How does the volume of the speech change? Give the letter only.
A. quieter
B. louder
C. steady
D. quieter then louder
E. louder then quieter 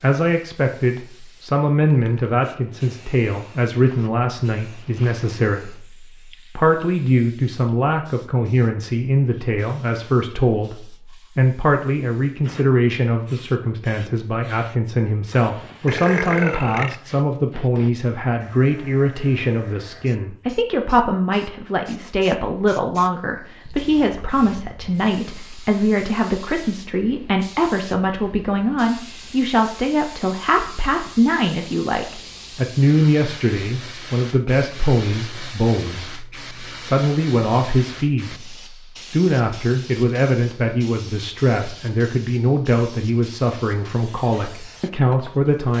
C.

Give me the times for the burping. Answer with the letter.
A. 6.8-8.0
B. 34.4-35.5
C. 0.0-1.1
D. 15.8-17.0
D.